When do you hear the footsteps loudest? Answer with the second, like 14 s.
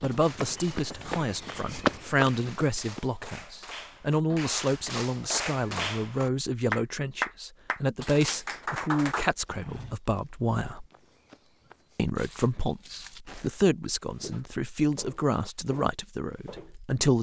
2 s.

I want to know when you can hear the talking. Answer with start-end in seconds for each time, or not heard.
0.0-10.8, 11.9-17.1.